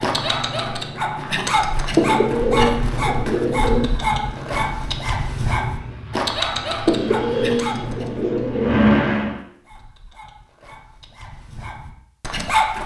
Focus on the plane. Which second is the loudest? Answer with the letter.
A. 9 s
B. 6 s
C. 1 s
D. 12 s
A.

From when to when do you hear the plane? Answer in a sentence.
The plane can be heard from 0.0 to 9.4 s.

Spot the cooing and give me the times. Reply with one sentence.
You can hear the cooing from 1.9 to 3.9 s and from 6.8 to 8.8 s.